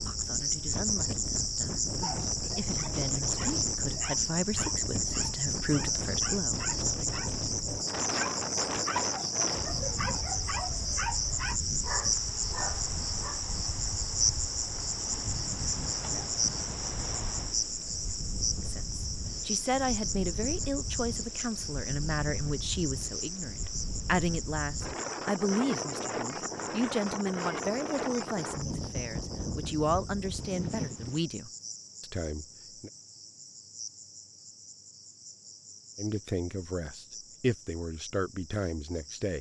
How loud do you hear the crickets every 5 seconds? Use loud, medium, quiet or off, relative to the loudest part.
loud, loud, loud, loud, medium, medium, quiet, quiet.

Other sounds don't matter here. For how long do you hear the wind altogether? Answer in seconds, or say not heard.
31 s.